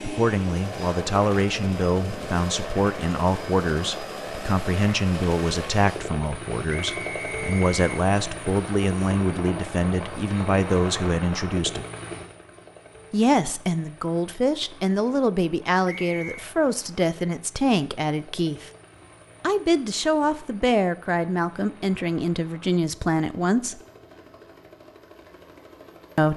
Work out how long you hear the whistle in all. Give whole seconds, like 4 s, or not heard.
2 s.